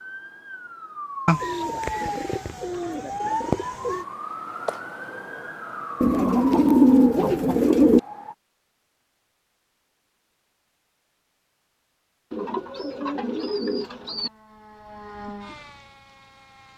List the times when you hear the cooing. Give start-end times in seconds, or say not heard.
1.2-4.0, 6.0-8.0, 12.3-14.3.